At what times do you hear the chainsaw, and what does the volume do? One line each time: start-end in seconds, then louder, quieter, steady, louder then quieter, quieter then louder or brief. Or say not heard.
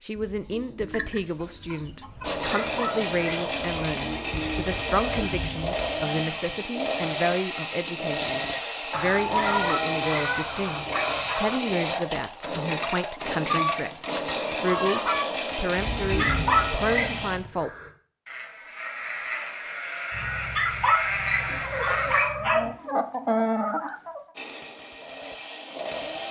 2.2-17.4 steady
24.4-26.2 brief.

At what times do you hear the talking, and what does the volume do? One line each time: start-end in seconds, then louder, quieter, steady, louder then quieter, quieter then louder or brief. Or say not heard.
0.1-17.7 steady.